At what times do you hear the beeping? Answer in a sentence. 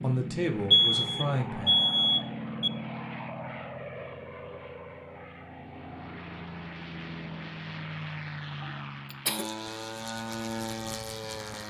You can hear the beeping from 0.7 to 2.7 s.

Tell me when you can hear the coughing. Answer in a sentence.
You can hear the coughing from 8.6 to 9.4 s.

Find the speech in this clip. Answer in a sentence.
The speech can be heard from 0.0 to 1.8 s.